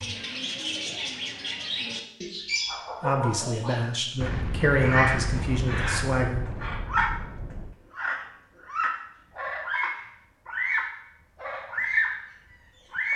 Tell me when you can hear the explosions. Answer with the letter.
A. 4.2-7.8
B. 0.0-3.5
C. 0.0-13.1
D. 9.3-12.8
A.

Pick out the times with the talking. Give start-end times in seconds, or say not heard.
3.0-6.5.